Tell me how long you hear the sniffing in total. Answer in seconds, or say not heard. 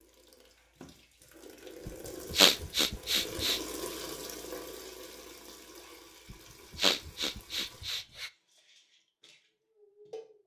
4 s.